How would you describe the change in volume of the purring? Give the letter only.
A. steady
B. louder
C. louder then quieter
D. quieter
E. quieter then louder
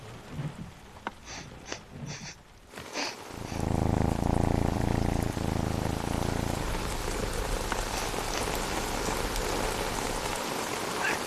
D.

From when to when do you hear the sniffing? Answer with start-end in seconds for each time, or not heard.
0.9-3.6, 7.6-8.4.